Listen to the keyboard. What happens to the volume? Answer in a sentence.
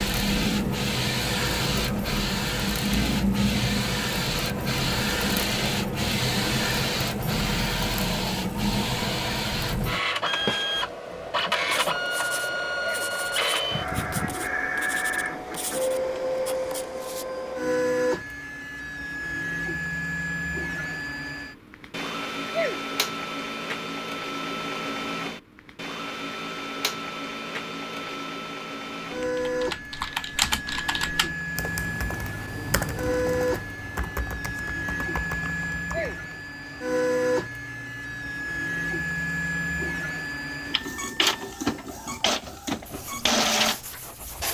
The loudness of the keyboard goes down.